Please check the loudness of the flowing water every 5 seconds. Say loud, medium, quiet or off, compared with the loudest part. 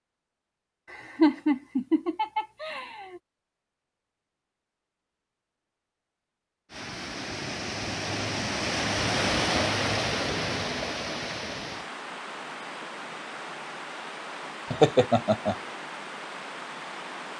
off, loud, medium, medium.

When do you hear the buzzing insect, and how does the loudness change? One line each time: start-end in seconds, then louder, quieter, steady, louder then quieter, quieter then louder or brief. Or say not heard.
not heard.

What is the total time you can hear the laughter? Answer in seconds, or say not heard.
3 s.